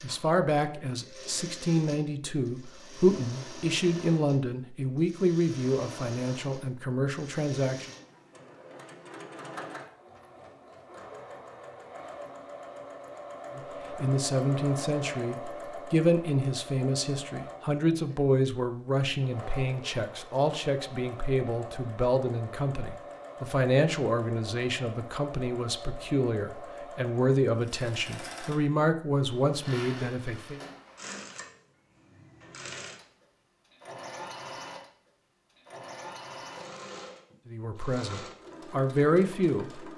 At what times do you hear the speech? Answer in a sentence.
The speech can be heard from 0.0 to 7.8 s, from 13.6 to 30.6 s and from 37.5 to 39.8 s.